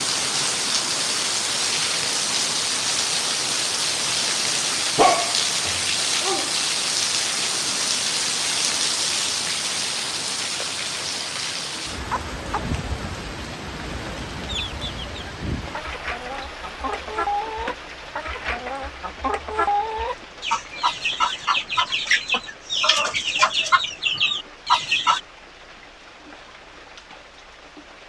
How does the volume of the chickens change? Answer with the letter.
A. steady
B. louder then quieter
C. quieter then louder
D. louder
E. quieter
D.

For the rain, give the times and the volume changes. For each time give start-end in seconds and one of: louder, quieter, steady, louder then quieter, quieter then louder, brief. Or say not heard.
0.0-28.0 quieter.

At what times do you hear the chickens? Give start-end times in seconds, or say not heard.
14.4-25.2.